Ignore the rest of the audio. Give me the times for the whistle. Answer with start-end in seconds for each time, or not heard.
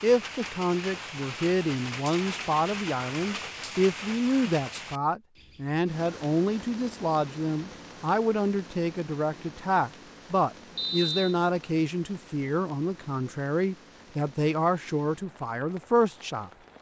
10.8-11.3.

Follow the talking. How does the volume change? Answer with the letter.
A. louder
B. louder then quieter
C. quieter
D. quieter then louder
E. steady
E.